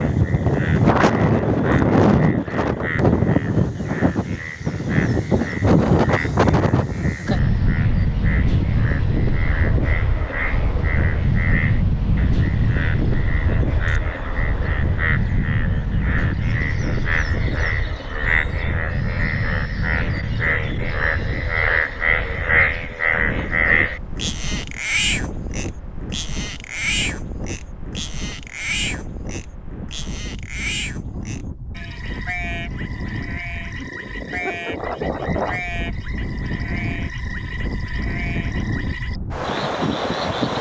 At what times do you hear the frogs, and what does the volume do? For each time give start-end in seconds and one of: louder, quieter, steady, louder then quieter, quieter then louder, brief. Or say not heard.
0.0-40.5 louder then quieter.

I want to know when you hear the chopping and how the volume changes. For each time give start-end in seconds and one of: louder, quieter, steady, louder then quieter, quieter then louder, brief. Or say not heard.
not heard.